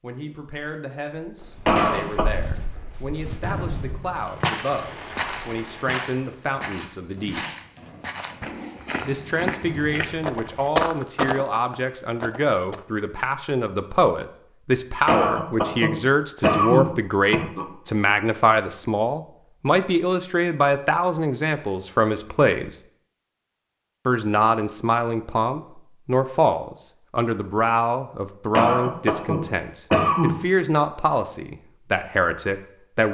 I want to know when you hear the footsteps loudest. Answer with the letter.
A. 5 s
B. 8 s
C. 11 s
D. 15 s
C.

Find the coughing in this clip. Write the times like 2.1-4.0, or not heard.
1.6-2.3, 15.1-17.7, 28.6-30.4.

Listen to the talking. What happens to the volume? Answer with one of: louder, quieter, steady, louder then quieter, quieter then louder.
louder.